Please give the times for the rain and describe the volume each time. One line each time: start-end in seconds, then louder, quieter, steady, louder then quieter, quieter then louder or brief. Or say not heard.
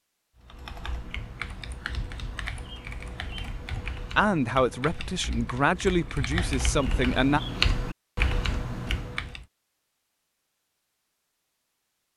not heard.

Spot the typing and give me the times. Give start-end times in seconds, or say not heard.
0.3-9.4.